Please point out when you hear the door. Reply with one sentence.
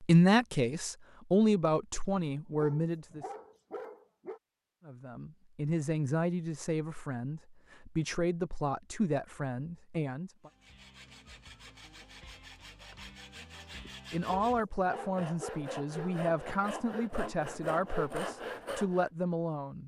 The door can't be heard in this clip.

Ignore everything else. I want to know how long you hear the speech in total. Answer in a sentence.
The speech can be heard for 15 seconds in total.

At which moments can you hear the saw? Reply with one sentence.
You can hear the saw from 10.4 to 19.1 s.